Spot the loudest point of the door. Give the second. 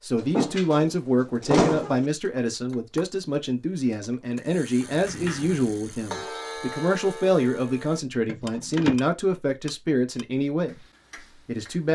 2 s.